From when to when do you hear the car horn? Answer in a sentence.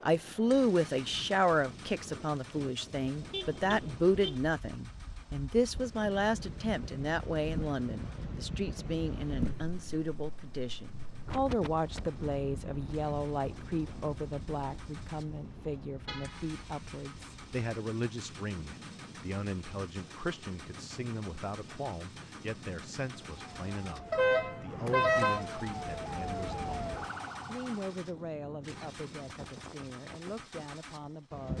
You can hear the car horn from 3.3 to 4.4 s, from 16.1 to 16.6 s and from 24.1 to 25.4 s.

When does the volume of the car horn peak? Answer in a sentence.
The volume of the car horn peaks at 25 seconds.